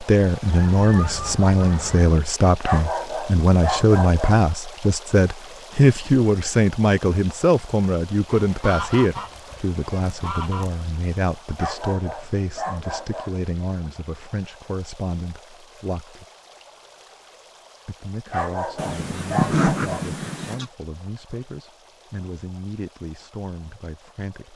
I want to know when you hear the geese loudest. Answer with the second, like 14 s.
20 s.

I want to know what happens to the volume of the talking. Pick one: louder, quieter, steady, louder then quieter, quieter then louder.
quieter.